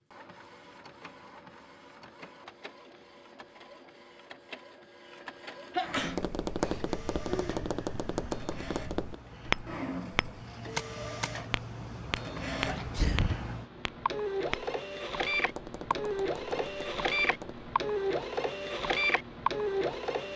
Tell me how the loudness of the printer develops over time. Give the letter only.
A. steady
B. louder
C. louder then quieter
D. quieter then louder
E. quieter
B.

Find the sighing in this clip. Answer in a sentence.
You can hear the sighing from 7.2 to 8.4 s.